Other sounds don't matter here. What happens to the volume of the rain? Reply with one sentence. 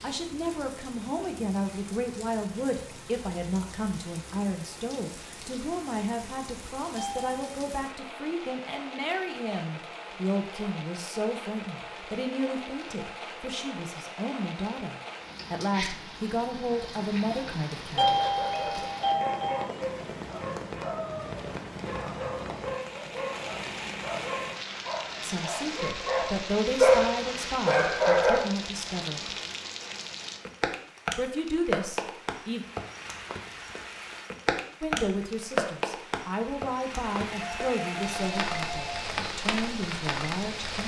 The loudness of the rain goes up.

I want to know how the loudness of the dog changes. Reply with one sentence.
The volume of the dog goes up.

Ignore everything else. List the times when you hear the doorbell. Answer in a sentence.
The doorbell can be heard from 7.0 to 7.5 s, from 17.7 to 19.6 s and from 37.3 to 39.1 s.